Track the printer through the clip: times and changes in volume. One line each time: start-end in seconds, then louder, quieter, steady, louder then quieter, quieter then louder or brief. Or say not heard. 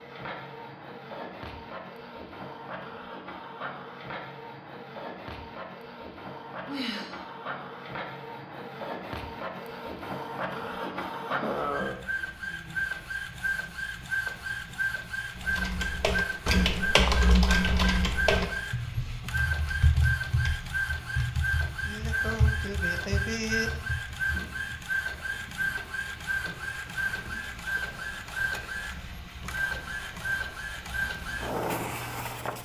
0.0-32.6 louder.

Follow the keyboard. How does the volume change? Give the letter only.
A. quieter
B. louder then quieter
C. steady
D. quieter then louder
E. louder
A.